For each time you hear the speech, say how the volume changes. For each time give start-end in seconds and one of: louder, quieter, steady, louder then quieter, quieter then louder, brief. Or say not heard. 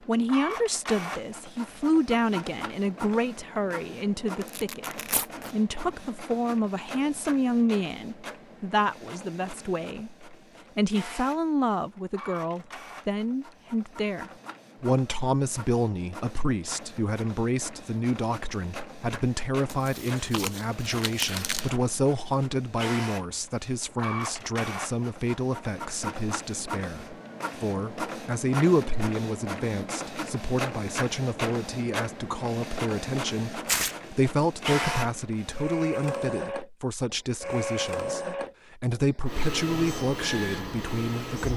0.1-41.5 steady.